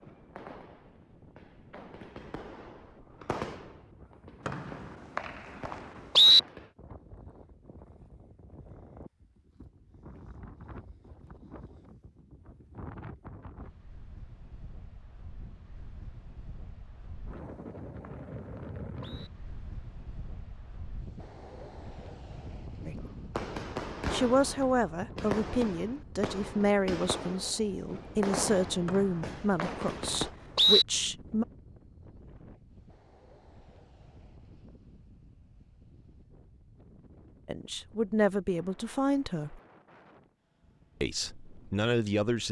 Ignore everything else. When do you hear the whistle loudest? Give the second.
6 s.